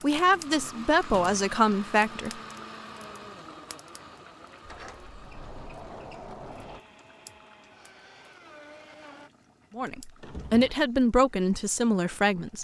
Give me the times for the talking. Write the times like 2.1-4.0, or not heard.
0.0-2.3, 9.8-12.5.